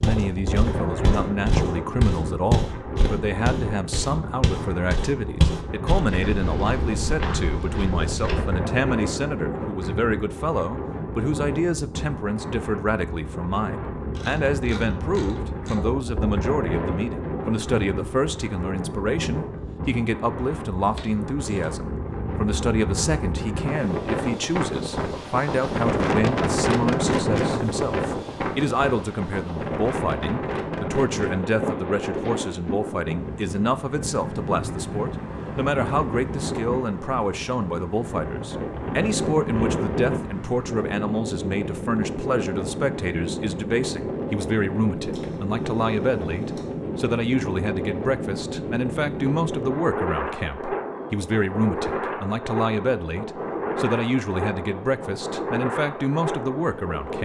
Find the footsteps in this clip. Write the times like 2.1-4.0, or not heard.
0.0-8.6.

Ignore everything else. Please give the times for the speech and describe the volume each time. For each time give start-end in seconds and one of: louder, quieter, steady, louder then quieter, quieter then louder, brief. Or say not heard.
0.0-57.2 steady.